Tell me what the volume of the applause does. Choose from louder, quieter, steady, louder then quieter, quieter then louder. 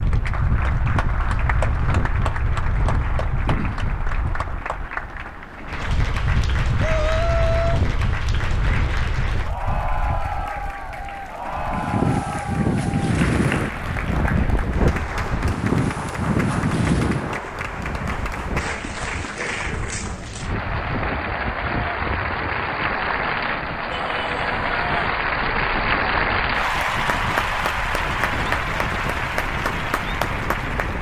louder.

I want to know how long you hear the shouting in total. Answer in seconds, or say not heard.
2 s.